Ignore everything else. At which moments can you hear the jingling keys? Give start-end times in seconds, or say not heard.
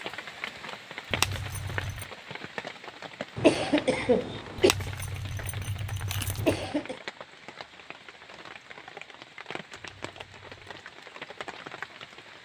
1.1-2.1, 4.5-6.7, 9.8-10.8.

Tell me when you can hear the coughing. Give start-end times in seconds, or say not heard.
3.4-4.7, 6.3-7.0.